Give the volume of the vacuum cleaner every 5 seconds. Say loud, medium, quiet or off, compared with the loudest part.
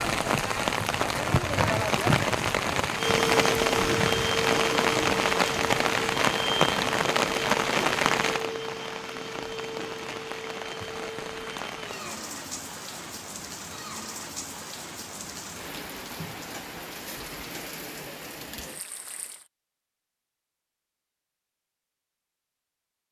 loud, medium, quiet, off, off.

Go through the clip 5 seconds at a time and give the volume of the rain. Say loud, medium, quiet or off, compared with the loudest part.
loud, loud, quiet, quiet, off.